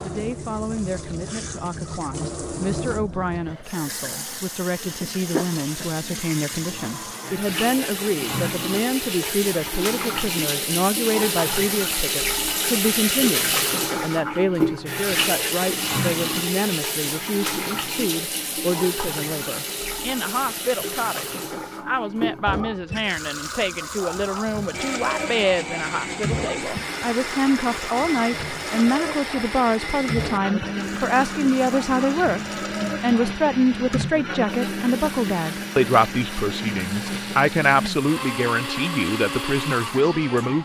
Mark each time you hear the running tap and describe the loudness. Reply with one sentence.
The running tap can be heard from 0.0 to 40.6 s, getting louder then quieter.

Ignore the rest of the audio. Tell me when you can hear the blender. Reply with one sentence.
You can hear the blender from 24.7 to 40.6 s.